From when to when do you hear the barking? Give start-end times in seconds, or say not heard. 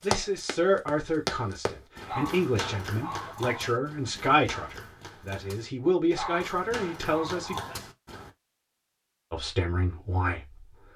2.0-3.8, 6.2-7.8.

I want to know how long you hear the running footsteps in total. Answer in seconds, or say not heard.
8 s.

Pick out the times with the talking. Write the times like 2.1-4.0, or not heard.
0.0-7.6, 9.3-10.9.